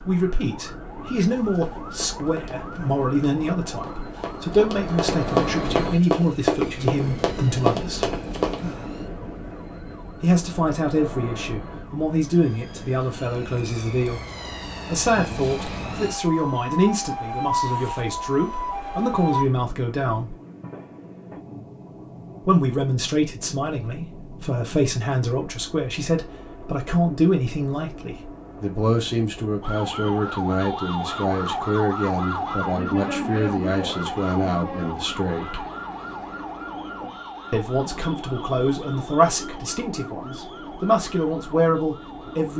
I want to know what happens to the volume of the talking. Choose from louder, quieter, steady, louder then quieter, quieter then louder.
steady.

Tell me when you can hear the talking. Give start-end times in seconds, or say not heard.
0.0-8.1, 10.2-14.2, 14.8-20.4, 22.4-35.6, 37.5-42.5.